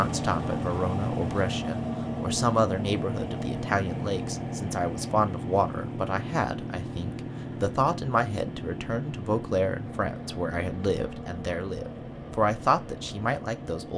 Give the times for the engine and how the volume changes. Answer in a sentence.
The engine can be heard from 0.0 to 13.9 s, getting quieter.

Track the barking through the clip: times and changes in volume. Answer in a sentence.
The barking can't be heard in this clip.